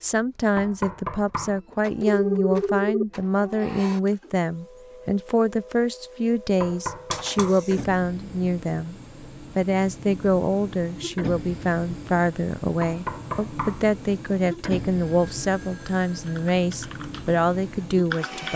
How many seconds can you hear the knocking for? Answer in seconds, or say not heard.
3 s.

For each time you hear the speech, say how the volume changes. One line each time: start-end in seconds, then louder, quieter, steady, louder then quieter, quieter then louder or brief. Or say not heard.
0.0-18.5 steady.